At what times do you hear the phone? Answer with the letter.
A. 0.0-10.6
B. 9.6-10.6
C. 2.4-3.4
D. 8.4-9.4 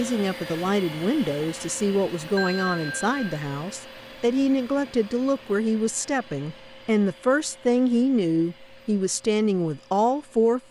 C.